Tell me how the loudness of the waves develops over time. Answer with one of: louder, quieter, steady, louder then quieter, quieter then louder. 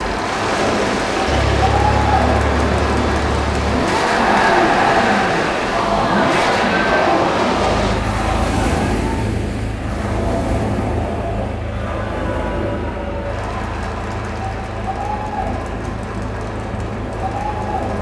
quieter.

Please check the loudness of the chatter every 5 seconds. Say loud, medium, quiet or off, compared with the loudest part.
loud, loud, medium, medium.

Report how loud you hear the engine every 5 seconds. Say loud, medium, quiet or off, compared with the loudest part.
loud, loud, medium, medium.